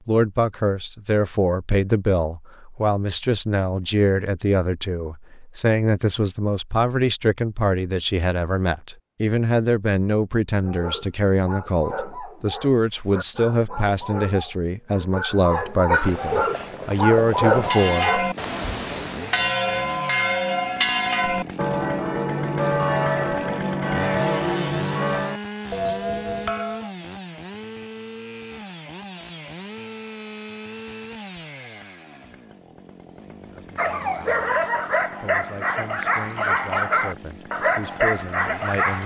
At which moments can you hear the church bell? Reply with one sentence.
The church bell can be heard from 17.5 to 26.9 s.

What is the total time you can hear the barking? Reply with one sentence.
The barking can be heard for 13 seconds in total.